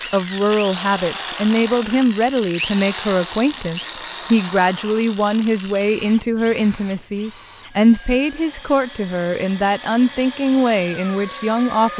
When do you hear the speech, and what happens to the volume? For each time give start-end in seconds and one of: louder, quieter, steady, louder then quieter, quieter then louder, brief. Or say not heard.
0.0-11.9 steady.